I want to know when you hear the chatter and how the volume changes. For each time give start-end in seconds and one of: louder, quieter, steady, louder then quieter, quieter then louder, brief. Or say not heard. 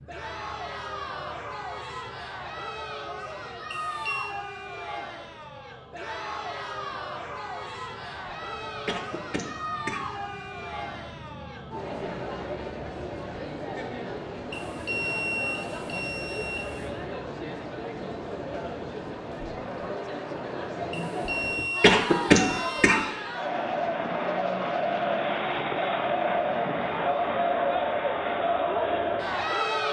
0.1-29.8 louder.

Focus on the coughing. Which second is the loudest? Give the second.
22 s.